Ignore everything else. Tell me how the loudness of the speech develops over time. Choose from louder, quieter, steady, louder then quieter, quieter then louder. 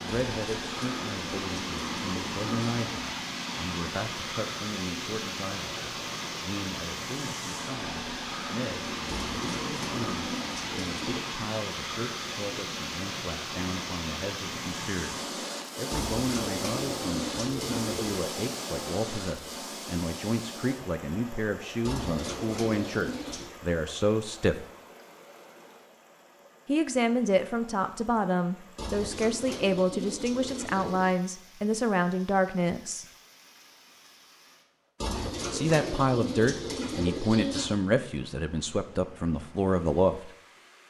louder.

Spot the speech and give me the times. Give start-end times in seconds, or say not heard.
0.0-24.6, 26.6-33.0, 35.5-40.3.